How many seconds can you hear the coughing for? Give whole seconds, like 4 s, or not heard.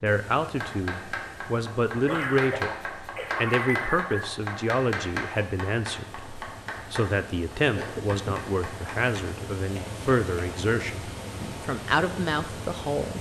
3 s.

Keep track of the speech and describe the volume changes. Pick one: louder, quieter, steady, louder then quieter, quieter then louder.
steady.